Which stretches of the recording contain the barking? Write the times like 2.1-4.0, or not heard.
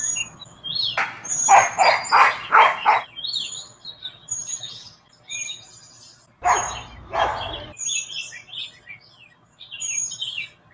0.9-3.0, 6.4-7.8.